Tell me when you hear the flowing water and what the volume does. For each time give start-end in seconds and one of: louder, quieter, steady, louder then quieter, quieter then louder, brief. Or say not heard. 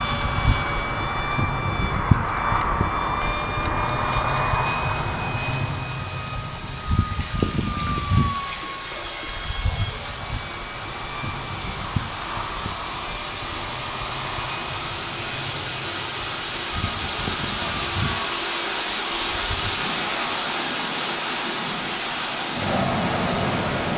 3.9-23.9 louder.